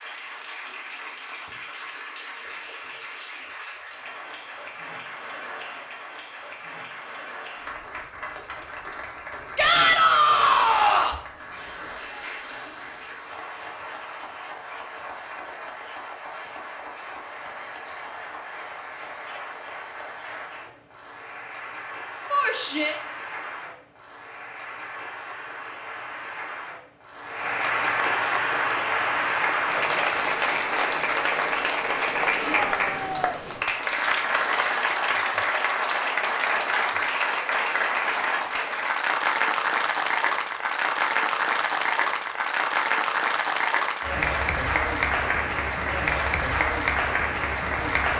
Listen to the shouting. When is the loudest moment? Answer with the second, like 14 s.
10 s.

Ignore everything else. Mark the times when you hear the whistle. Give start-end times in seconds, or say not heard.
not heard.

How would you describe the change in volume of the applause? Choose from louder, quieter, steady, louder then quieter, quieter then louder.
louder.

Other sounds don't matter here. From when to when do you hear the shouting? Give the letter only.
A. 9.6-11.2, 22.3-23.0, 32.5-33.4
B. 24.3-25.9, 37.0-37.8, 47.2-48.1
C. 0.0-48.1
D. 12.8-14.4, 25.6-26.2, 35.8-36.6
A.